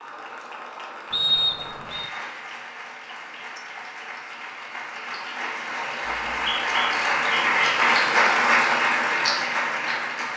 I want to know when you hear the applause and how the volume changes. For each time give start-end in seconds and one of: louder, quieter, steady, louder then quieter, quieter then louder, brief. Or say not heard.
0.0-10.3 louder.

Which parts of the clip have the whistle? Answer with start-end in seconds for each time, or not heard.
1.1-2.1, 6.1-7.7.